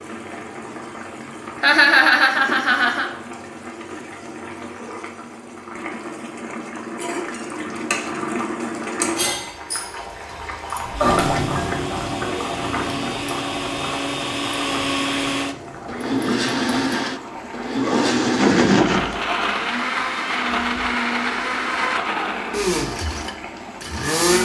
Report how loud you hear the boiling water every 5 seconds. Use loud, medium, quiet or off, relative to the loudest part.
medium, loud, loud, medium, medium.